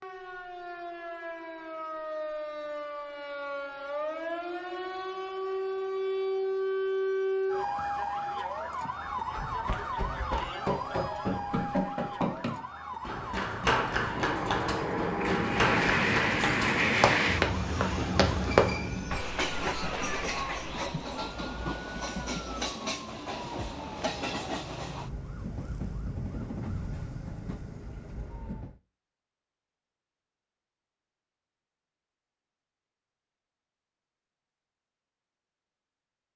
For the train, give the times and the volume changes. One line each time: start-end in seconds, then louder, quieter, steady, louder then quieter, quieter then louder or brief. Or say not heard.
14.0-28.8 quieter.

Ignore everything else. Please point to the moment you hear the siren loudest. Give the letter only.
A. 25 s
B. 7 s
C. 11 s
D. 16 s
B.